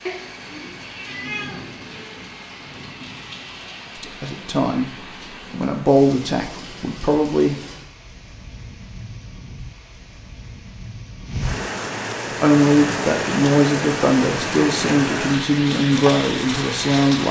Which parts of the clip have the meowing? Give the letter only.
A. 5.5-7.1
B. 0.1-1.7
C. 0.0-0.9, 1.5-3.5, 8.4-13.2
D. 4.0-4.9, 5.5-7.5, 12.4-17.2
B.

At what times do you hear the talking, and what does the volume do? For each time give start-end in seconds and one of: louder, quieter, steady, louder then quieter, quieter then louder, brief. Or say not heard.
4.0-4.9 brief
5.5-7.5 brief
12.4-17.2 steady.